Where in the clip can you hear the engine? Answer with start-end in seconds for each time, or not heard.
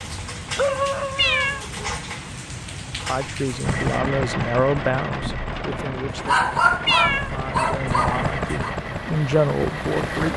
3.6-10.3.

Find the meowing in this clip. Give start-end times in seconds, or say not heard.
1.1-1.6, 6.8-7.3.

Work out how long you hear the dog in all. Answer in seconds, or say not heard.
4 s.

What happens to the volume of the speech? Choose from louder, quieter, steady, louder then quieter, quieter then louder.
quieter then louder.